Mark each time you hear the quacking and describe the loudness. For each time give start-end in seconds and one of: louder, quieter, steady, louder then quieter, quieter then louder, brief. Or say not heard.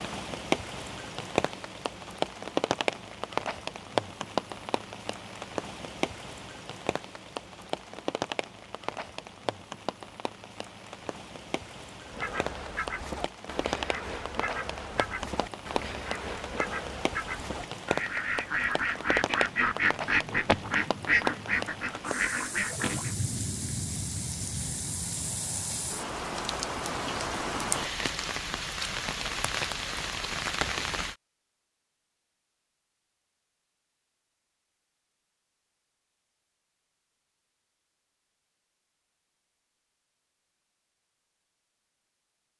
12.1-23.1 louder.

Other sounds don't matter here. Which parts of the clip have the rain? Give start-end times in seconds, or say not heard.
0.0-31.1.